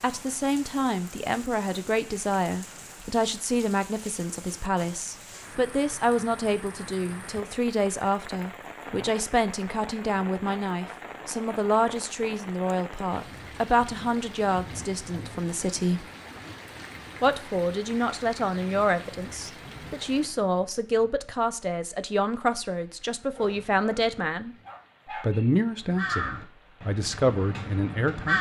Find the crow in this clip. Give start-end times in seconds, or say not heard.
25.9-28.3.